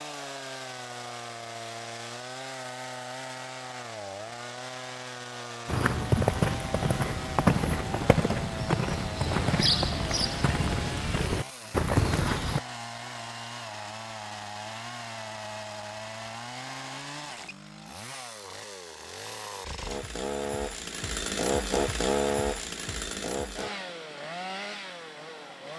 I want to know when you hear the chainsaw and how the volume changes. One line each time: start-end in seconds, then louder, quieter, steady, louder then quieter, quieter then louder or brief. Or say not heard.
0.0-25.7 louder.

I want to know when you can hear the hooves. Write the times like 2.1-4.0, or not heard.
5.7-12.6.